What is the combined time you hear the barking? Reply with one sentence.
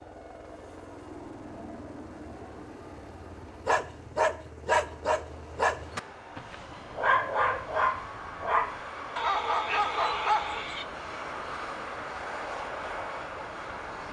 The barking can be heard for 7 seconds in total.